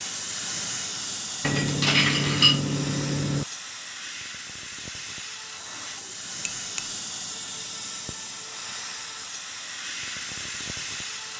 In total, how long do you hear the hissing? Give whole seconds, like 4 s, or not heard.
11 s.